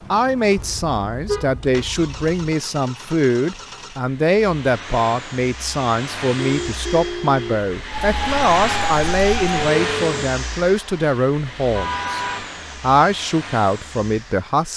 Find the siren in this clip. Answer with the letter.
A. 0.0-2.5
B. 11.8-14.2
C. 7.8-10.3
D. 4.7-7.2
C.